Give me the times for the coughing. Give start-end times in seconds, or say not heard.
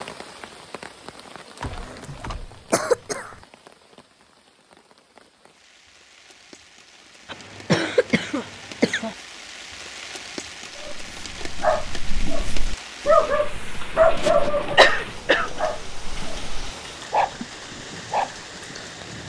1.6-3.4, 7.3-9.2, 14.2-15.7.